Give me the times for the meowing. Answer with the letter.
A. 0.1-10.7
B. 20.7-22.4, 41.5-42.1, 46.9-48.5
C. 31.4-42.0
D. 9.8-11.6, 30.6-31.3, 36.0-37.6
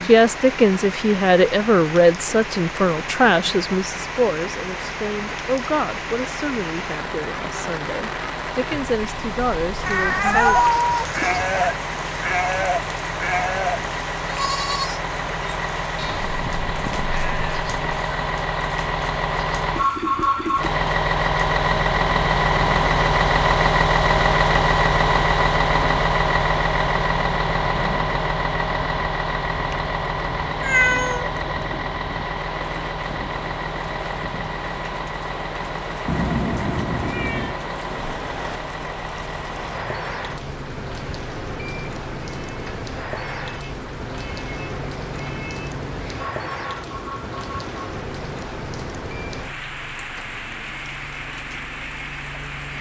D.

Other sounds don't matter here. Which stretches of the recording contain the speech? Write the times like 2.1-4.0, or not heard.
0.1-10.7.